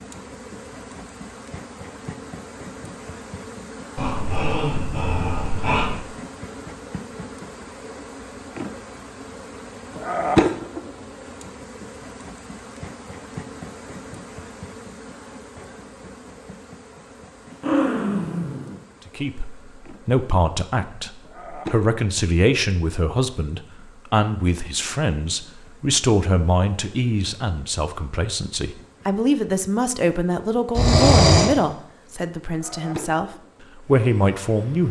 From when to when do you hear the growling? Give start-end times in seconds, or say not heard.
4.0-6.0, 17.5-18.8, 30.8-31.5.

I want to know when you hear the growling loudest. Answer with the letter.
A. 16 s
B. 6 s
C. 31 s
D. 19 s
C.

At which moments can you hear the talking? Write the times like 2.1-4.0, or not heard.
19.1-34.8.